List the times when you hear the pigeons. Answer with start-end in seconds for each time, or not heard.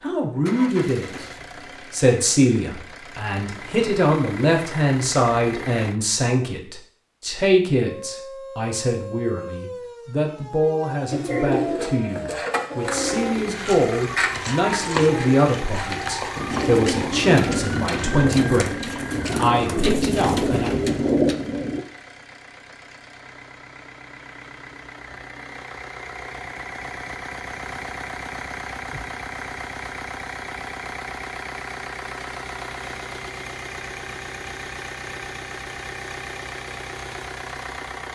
11.1-21.8.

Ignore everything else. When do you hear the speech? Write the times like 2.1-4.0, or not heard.
0.0-1.2, 1.9-20.7.